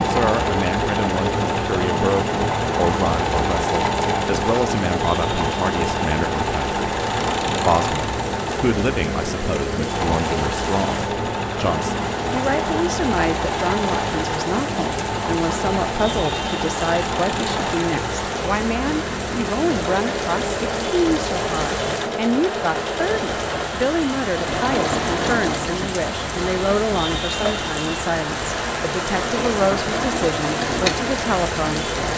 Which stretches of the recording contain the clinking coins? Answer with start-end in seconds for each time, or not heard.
not heard.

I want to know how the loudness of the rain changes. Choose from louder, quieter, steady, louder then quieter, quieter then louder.
louder.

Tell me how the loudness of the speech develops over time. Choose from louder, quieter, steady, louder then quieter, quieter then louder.
steady.